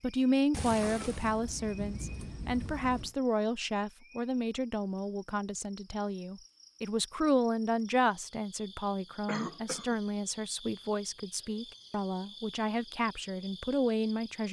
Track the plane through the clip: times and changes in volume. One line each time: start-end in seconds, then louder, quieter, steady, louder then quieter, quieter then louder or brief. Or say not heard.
not heard.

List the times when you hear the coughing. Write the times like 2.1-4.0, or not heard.
9.2-10.0.